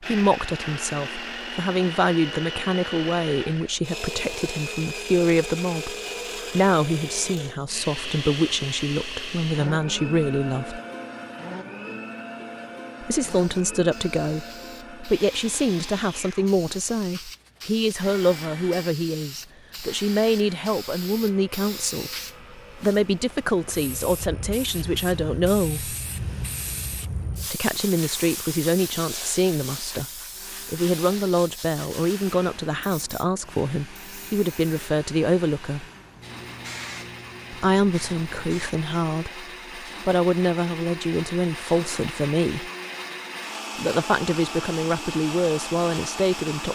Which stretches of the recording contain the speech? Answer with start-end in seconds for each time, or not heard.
0.0-10.8, 13.0-25.9, 27.5-35.9, 37.5-42.7, 43.8-46.7.